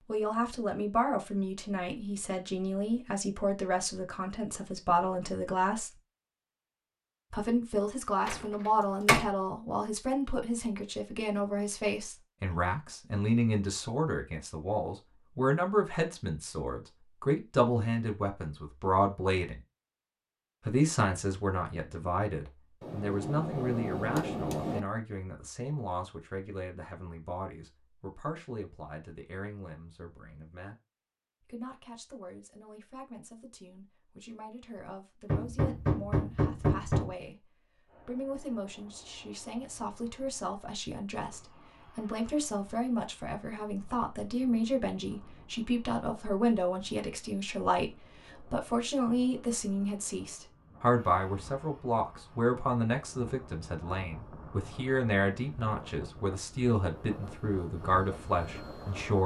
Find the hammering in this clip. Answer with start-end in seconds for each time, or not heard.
22.8-24.8, 35.2-37.1.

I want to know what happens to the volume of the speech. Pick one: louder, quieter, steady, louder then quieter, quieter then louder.
quieter then louder.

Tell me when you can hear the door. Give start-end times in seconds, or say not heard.
8.2-9.3.